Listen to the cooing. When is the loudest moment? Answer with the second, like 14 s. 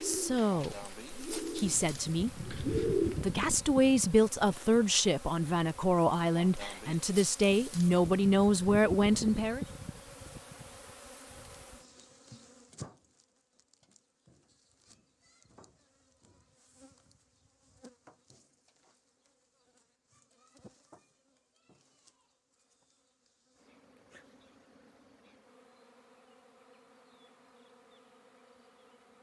3 s.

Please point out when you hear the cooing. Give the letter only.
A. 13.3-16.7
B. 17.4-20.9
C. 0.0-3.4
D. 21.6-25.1
C.